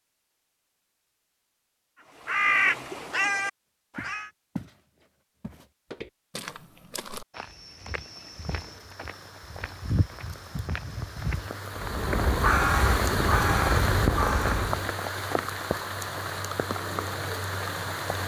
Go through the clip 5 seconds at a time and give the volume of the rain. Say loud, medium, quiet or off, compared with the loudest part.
off, quiet, loud, loud.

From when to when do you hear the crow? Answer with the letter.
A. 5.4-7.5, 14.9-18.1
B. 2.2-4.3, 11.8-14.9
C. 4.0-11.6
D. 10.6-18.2
B.